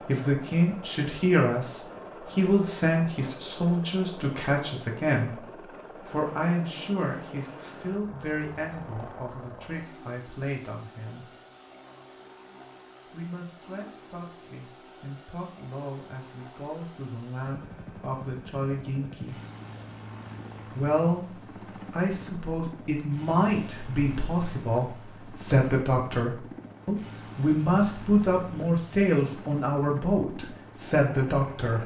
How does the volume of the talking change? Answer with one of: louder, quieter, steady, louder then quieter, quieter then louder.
quieter then louder.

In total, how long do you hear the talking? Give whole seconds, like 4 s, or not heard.
29 s.